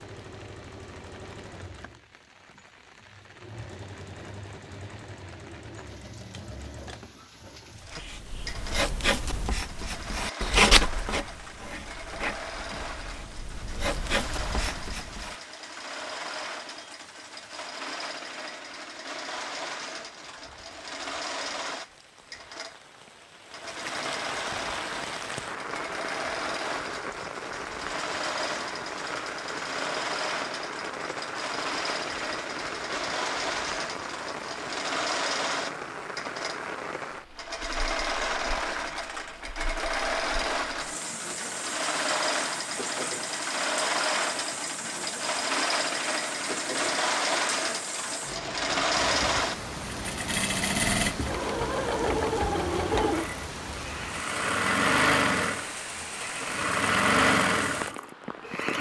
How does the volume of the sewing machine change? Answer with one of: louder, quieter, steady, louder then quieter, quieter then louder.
louder.